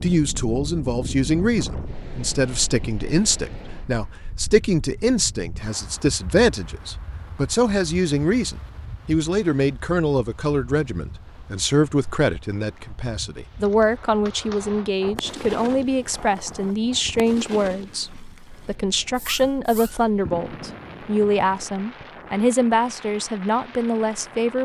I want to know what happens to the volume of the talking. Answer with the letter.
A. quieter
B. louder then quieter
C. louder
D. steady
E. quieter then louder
D.